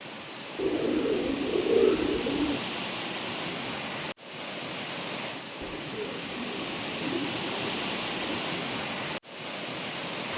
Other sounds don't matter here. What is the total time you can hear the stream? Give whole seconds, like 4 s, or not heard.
10 s.